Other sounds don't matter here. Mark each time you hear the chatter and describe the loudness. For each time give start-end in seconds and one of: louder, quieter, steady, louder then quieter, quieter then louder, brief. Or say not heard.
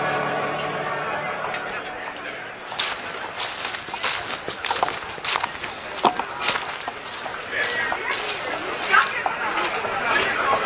0.0-10.6 quieter then louder.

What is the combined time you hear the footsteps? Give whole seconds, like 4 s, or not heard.
8 s.